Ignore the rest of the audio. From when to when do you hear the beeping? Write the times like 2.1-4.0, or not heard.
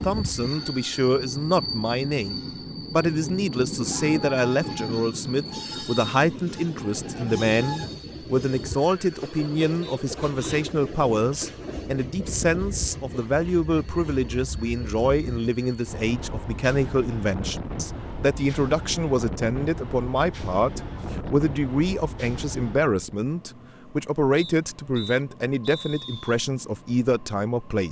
not heard.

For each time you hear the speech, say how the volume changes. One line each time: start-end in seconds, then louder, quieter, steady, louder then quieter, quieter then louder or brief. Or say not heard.
0.0-27.8 steady.